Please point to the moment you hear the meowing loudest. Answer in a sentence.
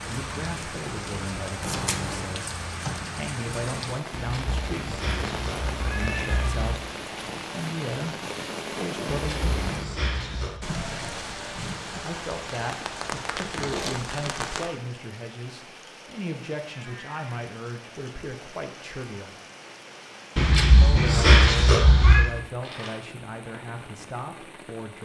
The loudest moment of the meowing is at 21 seconds.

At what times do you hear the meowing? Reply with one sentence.
You can hear the meowing from 4.1 to 6.8 s, from 9.1 to 10.6 s and from 20.4 to 22.2 s.